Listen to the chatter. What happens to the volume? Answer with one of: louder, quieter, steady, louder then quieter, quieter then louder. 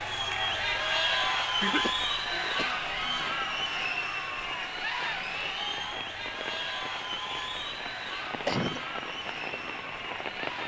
quieter.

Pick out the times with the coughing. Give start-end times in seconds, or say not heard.
1.6-3.4, 8.1-8.8.